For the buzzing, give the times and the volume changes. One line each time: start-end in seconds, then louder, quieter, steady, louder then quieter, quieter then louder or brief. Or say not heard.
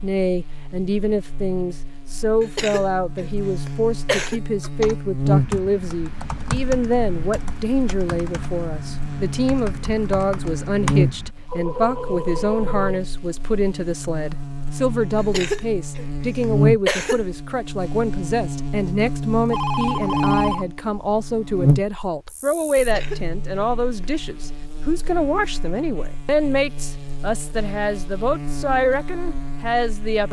0.0-30.2 quieter.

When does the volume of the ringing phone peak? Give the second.
20 s.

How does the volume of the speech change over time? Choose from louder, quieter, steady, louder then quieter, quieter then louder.
steady.